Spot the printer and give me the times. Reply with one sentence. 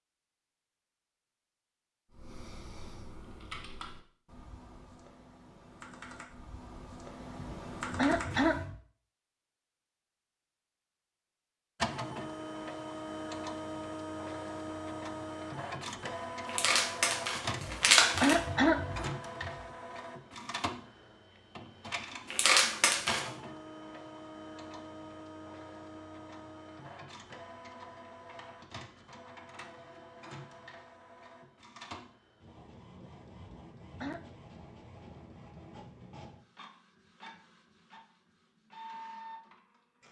The printer can be heard from 11.8 to 40.0 s.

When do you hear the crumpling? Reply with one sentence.
You can hear the crumpling from 16.4 to 18.4 s and from 22.3 to 23.3 s.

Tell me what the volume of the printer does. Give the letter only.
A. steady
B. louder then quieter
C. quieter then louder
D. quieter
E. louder
D.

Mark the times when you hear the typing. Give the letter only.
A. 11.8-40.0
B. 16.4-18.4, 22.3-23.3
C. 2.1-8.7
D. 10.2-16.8
C.